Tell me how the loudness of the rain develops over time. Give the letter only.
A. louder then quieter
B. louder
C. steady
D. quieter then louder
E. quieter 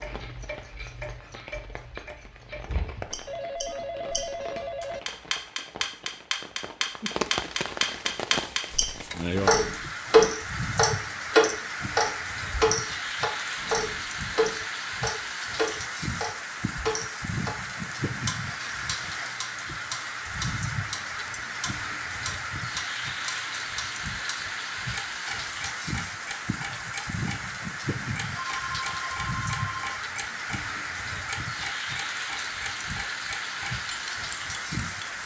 B.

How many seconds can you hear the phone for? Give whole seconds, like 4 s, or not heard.
3 s.